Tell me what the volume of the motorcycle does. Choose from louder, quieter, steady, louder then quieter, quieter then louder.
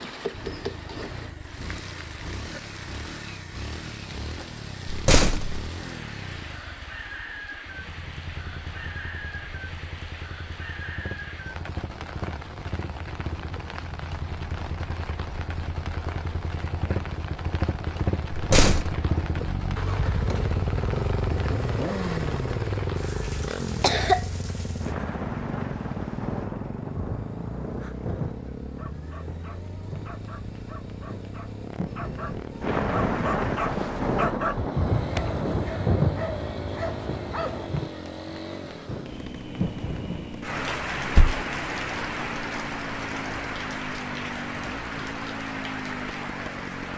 louder then quieter.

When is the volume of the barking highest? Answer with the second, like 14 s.
34 s.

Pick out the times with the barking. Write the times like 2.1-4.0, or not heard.
28.6-37.7.